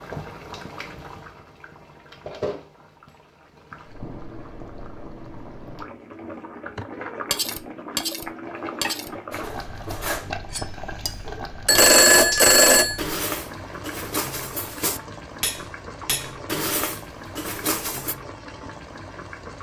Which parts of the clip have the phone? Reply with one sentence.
The phone can be heard from 11.7 to 13.0 s.